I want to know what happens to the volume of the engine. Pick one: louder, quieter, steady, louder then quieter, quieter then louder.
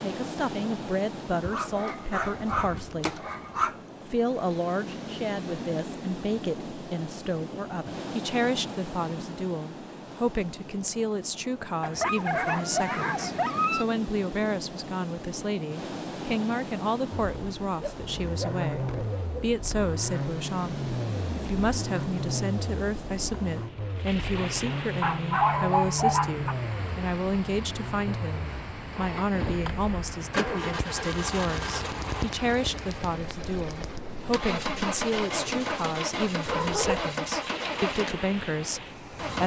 steady.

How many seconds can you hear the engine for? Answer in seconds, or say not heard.
22 s.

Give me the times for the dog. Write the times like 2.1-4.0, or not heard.
1.4-3.8, 11.8-13.8, 17.8-19.2, 25.0-26.6, 36.5-37.1.